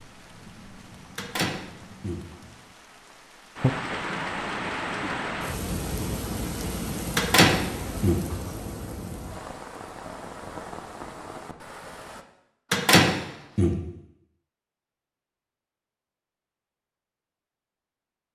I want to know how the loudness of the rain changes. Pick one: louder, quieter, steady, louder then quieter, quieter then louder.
louder then quieter.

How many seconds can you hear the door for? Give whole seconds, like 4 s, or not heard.
3 s.